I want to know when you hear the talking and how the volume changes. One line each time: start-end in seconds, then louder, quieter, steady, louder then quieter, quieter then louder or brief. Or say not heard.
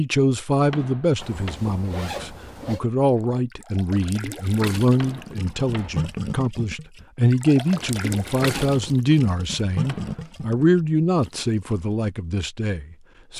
0.0-13.3 steady.